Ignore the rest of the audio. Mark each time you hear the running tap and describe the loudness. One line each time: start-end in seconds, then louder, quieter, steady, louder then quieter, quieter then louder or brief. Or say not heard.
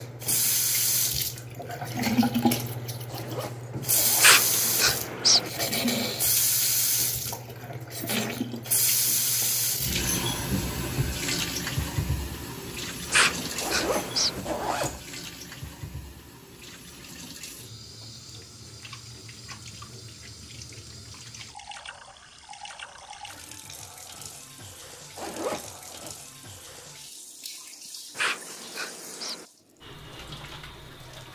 0.0-31.3 quieter.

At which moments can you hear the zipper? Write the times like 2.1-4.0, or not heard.
3.0-4.4, 13.6-15.0, 25.1-26.1.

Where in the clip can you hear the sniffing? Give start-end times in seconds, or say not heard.
4.2-5.5, 13.1-14.4, 28.1-29.4.